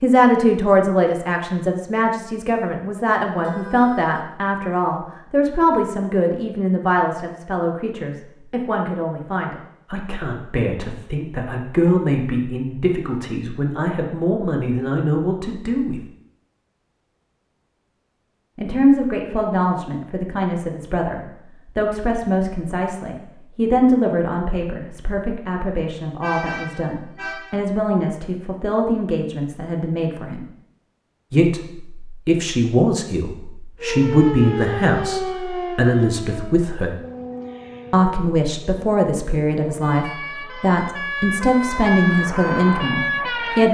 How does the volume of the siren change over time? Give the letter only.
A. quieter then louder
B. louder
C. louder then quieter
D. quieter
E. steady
A.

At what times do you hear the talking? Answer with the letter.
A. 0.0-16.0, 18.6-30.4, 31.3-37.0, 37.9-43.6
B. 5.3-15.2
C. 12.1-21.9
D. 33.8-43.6
A.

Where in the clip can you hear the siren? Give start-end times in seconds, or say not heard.
33.8-43.6.